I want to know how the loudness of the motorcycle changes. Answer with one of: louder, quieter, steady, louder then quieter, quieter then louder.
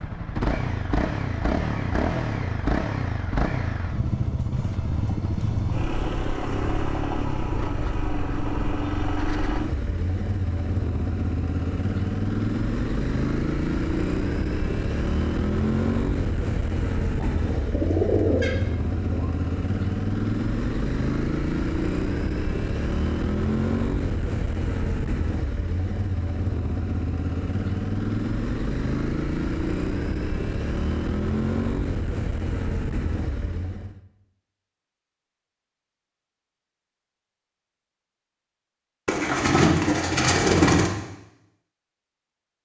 steady.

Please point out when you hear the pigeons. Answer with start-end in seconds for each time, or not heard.
17.2-19.3, 39.0-40.9.